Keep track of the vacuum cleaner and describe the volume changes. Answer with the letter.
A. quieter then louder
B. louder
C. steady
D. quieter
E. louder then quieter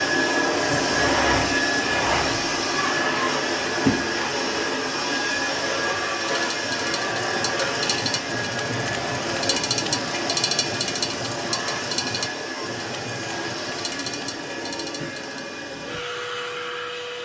D.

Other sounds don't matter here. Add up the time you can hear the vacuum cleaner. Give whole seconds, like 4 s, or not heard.
17 s.